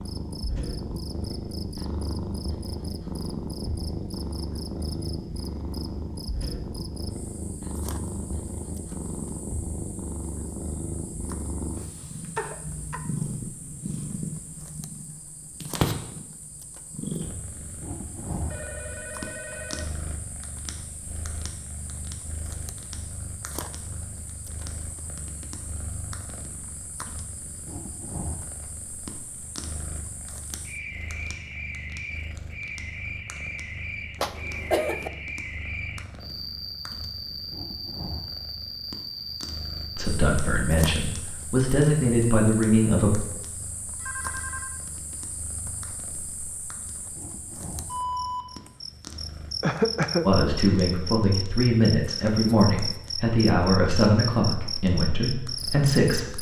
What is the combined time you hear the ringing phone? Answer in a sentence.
The ringing phone can be heard for 2 seconds in total.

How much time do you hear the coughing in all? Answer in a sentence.
You can hear the coughing for 3 seconds altogether.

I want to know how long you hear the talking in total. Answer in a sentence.
You can hear the talking for 9 seconds altogether.